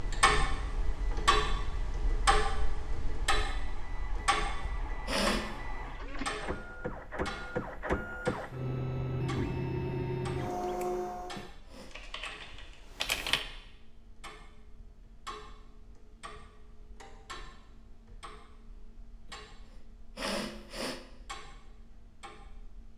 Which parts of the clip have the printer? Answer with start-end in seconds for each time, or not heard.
0.0-11.5.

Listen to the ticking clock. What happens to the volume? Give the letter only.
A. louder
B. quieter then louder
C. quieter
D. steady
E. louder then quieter
C.